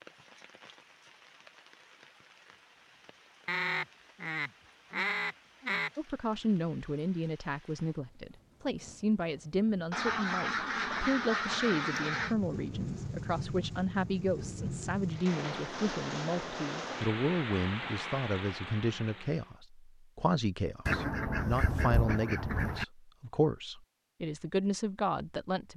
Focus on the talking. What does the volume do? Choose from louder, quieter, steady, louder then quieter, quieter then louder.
steady.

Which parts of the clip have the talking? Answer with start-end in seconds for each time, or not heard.
6.0-25.7.